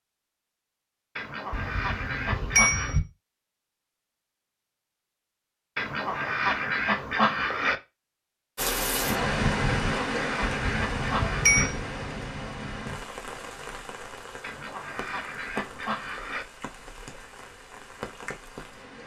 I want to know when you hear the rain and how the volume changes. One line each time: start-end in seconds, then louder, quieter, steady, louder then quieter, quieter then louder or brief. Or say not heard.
8.6-19.0 quieter.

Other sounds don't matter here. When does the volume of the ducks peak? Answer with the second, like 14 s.
7 s.